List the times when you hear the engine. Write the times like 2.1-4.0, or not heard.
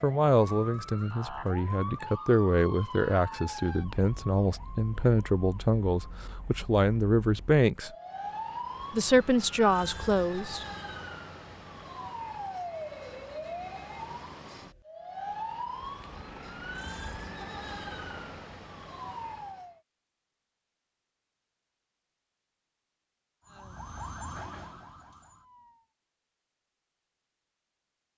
15.8-18.6.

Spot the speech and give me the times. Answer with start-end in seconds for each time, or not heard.
0.0-7.9, 8.9-10.7.